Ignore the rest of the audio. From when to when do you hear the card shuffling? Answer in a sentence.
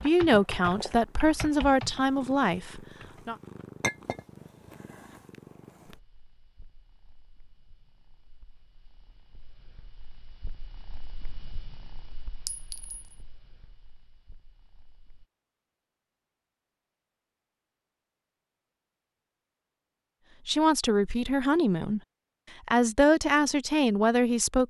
You can't hear the card shuffling here.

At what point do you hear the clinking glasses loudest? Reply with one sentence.
The loudest moment of the clinking glasses is at 4 seconds.